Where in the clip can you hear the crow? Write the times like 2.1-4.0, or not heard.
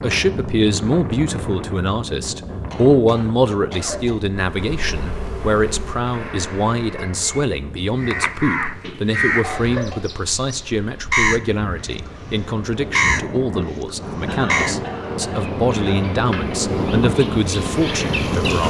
8.0-14.8.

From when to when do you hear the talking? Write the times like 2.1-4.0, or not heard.
0.0-18.6.